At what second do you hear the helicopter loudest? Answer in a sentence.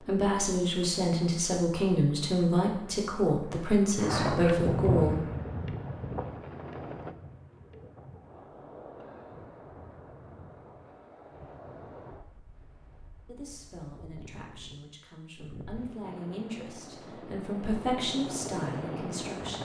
The volume of the helicopter peaks at 19 seconds.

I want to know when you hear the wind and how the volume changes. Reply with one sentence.
You can hear the wind from 0.0 to 16.2 s, getting louder then quieter.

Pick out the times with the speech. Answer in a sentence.
The speech can be heard from 0.0 to 5.2 s and from 13.2 to 19.6 s.